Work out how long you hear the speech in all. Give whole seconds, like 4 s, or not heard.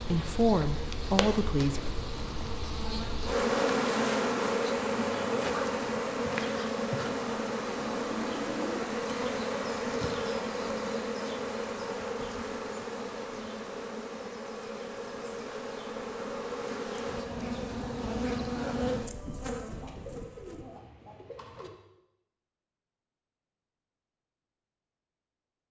2 s.